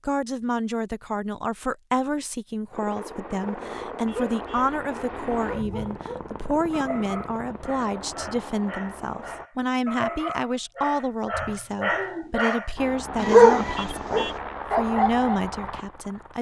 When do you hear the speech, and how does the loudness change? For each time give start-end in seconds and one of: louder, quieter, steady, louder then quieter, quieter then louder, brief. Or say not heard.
0.1-16.3 steady.